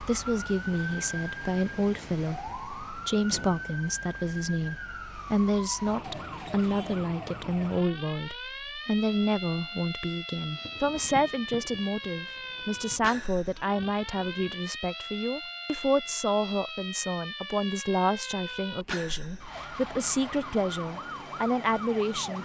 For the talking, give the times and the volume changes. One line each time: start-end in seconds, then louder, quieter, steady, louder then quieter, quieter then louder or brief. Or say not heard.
0.0-22.4 steady.